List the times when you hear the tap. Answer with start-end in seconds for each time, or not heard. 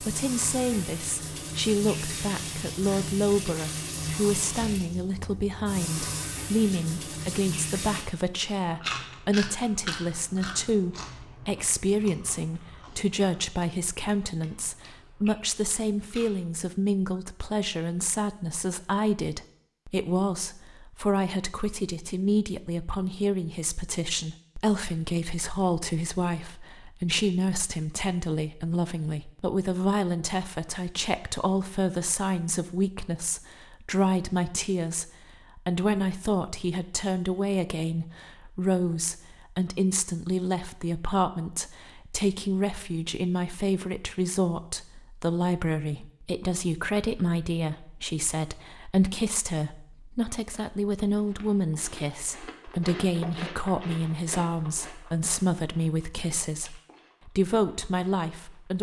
0.0-8.1.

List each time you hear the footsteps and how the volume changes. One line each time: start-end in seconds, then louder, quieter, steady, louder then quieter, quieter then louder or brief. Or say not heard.
not heard.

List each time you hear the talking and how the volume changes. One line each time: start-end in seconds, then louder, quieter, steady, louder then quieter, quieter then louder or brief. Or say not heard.
0.0-58.7 steady.